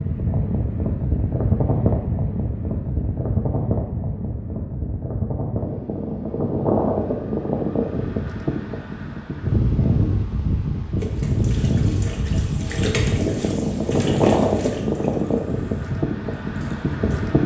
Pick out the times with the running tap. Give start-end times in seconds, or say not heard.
11.0-17.1.